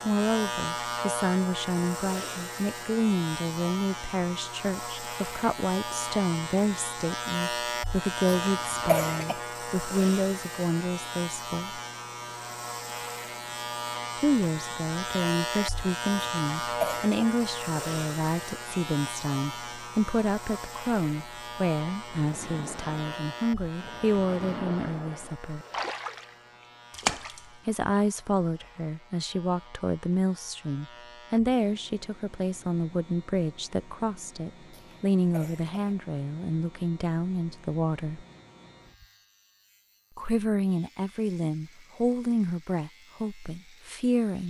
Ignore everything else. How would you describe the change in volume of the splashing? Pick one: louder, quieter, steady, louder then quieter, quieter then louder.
louder.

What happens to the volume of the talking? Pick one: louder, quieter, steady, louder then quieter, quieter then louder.
steady.